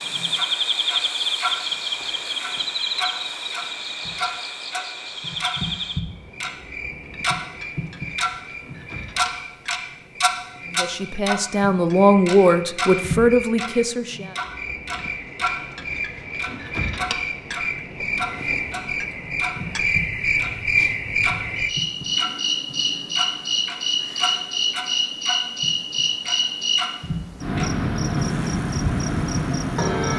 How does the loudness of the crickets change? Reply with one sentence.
The loudness of the crickets goes down, then up.